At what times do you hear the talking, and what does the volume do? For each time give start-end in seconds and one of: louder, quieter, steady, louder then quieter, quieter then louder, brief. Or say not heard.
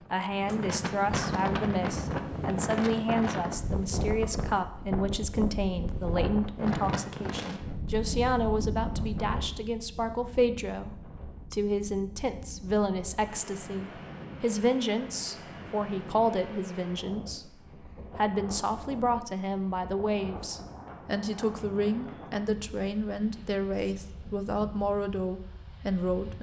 0.1-26.3 steady.